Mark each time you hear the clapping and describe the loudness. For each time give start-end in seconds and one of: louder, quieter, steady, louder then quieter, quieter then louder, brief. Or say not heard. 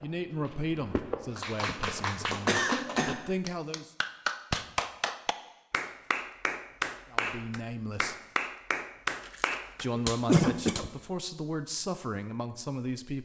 1.4-10.8 steady.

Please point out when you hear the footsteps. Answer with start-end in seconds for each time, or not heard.
0.0-2.2.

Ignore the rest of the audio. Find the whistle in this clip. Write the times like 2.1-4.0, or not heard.
not heard.